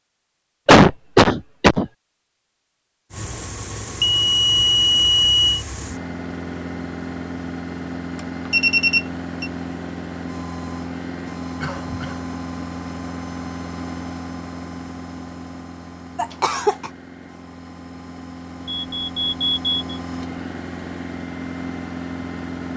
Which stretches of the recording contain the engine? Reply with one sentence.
You can hear the engine from 3.1 to 22.7 s.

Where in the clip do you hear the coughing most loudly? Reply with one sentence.
The loudest moment of the coughing is at 1 second.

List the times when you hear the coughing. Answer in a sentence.
You can hear the coughing from 0.7 to 1.9 s, from 11.6 to 12.3 s and from 16.1 to 16.9 s.